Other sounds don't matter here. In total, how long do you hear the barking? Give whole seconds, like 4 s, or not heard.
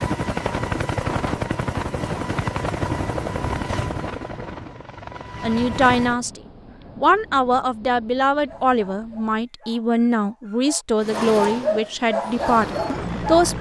5 s.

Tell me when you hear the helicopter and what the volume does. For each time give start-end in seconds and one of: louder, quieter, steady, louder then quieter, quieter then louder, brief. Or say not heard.
0.0-6.2 quieter
10.9-13.5 brief.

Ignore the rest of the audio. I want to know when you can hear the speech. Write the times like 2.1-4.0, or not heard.
5.4-13.5.